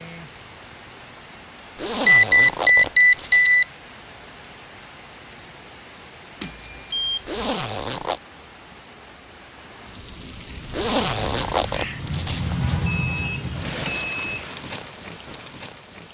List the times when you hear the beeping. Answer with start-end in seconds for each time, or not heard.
2.0-3.6, 6.4-7.3, 12.8-14.4.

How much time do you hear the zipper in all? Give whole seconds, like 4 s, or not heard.
5 s.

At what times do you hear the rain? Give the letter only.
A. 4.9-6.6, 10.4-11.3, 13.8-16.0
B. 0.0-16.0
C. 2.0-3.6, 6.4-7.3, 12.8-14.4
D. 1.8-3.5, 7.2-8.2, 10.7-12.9
B.